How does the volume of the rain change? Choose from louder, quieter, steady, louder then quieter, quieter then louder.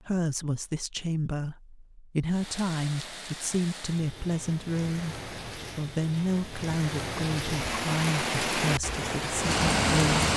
louder.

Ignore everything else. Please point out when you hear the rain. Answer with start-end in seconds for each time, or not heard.
2.2-10.3.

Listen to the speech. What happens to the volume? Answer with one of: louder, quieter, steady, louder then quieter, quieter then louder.
steady.